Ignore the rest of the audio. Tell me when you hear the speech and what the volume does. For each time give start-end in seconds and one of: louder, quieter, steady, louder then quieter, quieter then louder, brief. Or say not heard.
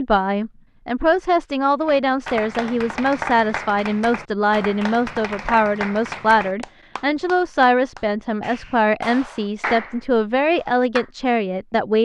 0.0-12.0 steady.